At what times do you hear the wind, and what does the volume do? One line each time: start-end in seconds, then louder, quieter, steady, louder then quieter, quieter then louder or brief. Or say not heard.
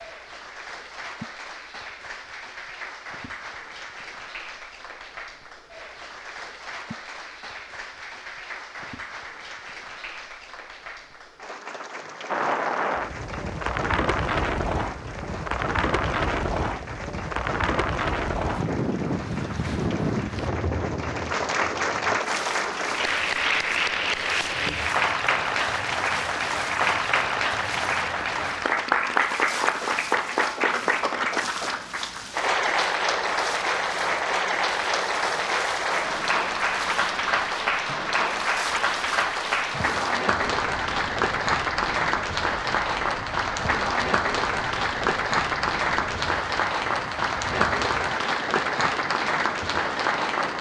12.2-50.5 quieter.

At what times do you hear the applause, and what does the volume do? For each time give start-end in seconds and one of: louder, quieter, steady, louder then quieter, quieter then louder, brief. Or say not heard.
0.0-50.5 louder.